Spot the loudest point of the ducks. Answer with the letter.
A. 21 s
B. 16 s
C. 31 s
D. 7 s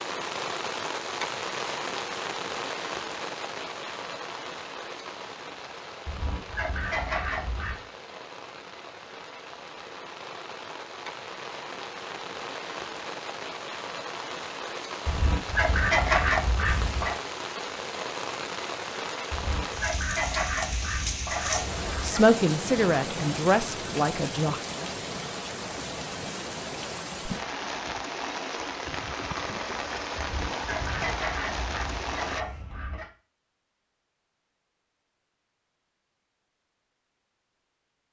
B.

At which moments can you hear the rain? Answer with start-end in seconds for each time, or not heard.
0.0-32.5.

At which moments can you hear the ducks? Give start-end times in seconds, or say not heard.
6.0-7.8, 15.1-17.1, 19.3-22.2, 30.1-33.0.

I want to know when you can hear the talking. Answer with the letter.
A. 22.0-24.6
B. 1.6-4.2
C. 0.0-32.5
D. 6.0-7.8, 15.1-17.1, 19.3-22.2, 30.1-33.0
A.